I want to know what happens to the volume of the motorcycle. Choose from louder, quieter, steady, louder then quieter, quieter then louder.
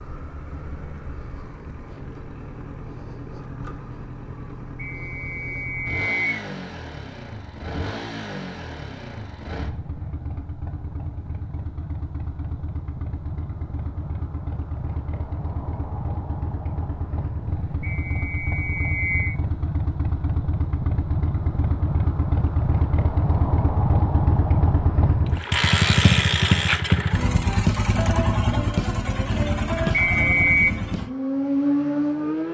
louder.